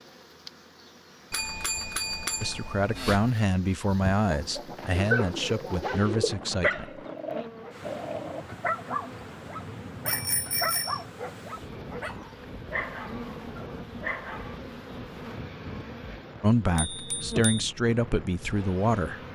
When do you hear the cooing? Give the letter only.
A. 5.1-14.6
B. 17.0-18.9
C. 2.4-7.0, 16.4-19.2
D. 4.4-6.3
D.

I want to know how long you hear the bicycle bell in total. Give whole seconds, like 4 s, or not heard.
4 s.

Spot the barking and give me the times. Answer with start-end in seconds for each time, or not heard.
5.1-14.6.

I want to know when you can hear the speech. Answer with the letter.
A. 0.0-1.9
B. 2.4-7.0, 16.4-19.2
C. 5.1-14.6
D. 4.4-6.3
B.